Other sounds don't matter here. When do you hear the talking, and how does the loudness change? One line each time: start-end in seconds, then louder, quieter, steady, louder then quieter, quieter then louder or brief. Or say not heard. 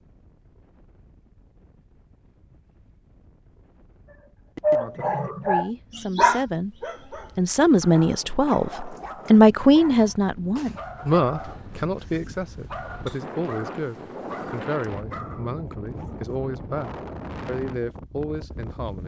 5.4-6.7 brief
7.3-19.0 quieter.